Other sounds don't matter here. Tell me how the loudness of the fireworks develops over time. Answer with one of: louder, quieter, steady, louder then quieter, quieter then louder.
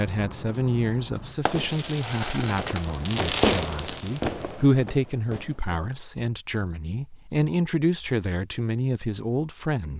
louder then quieter.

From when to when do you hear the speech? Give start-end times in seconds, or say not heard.
0.0-9.9.